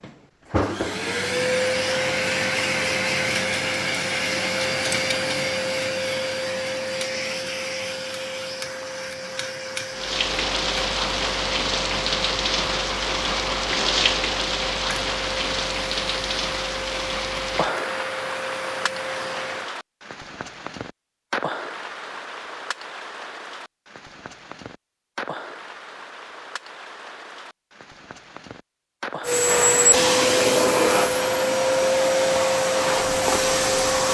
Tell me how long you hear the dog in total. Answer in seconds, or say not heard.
not heard.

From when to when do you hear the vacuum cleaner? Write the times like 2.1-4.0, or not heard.
0.0-19.7, 29.2-34.0.